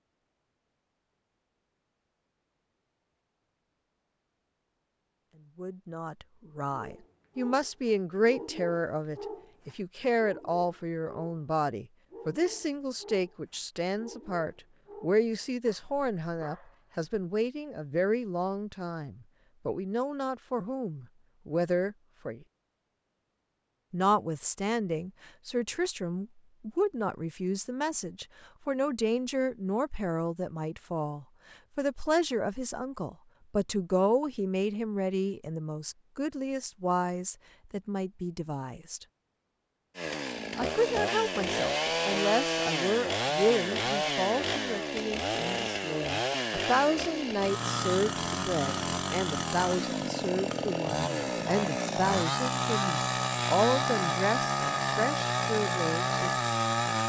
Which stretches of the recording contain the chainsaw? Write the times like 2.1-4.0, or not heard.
40.0-57.0.